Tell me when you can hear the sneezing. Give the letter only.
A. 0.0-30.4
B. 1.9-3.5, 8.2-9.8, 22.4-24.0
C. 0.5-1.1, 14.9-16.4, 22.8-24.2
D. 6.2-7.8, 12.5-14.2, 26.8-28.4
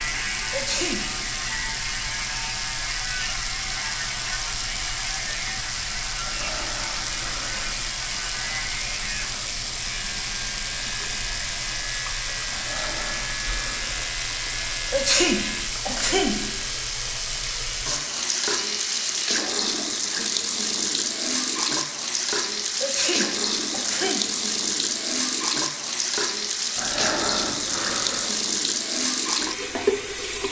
C.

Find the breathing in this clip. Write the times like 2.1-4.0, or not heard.
6.2-7.8, 12.5-14.2, 26.8-28.4.